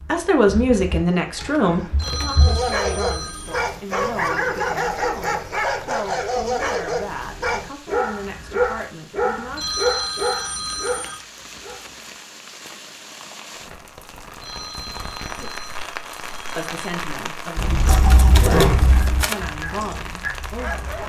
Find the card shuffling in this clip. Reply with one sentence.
You can hear the card shuffling from 1.4 to 2.2 s, from 10.7 to 12.1 s and from 17.9 to 19.4 s.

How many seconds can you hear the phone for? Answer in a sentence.
The phone can be heard for 6 seconds in total.